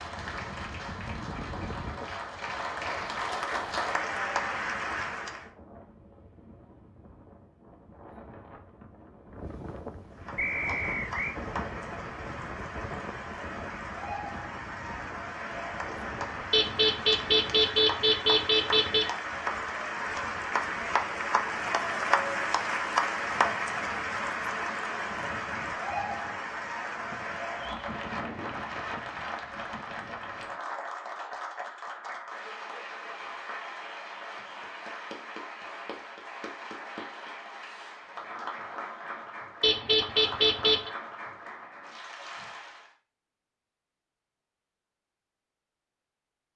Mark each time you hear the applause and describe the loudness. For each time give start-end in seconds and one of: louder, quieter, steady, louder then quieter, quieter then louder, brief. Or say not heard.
0.0-5.5 louder
10.1-42.9 louder then quieter.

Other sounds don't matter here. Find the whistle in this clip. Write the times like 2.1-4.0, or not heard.
10.3-11.4.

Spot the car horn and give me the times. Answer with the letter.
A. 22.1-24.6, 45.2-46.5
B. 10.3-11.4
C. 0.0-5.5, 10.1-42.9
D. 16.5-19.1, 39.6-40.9
D.